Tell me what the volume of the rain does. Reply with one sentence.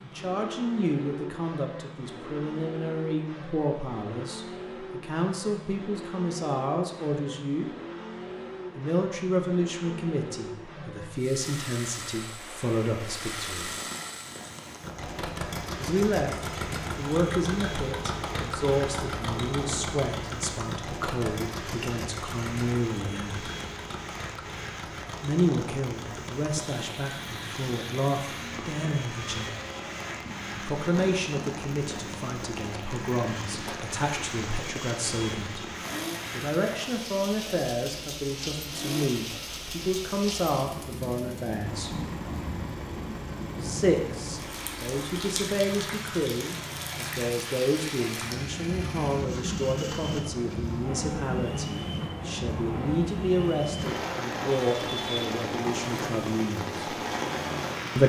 The loudness of the rain goes up.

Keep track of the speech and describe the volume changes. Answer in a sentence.
The loudness of the speech stays about the same.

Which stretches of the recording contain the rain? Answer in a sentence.
The rain can be heard from 11.4 to 58.0 s.